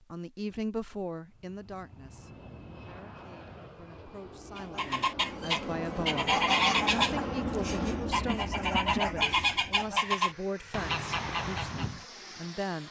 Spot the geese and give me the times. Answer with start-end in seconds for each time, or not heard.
4.5-12.1.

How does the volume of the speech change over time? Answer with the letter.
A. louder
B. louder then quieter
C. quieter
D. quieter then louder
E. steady
D.